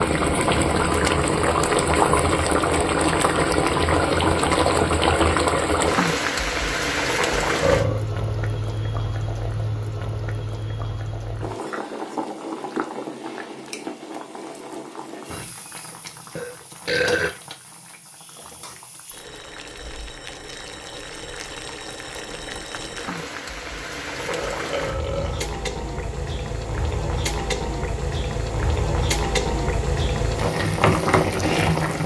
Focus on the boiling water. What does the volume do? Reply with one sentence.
The volume of the boiling water goes down, then up.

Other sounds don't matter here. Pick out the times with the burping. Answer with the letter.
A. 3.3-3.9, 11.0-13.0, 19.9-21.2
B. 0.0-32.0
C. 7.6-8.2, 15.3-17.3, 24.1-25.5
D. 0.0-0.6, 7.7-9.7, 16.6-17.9
C.